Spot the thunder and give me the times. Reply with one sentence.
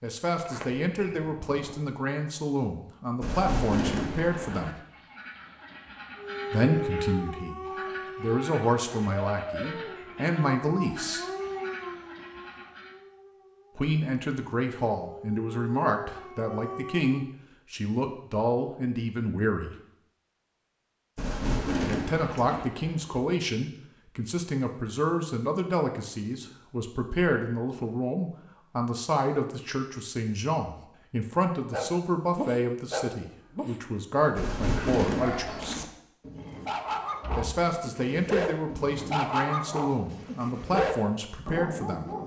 The thunder can be heard from 3.2 to 4.8 s, from 21.1 to 22.7 s and from 34.4 to 35.9 s.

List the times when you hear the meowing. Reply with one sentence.
You can't hear the meowing here.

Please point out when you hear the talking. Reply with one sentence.
The talking can be heard from 0.0 to 4.8 s, from 6.5 to 11.2 s, from 13.8 to 19.8 s, from 21.9 to 35.8 s and from 37.4 to 42.0 s.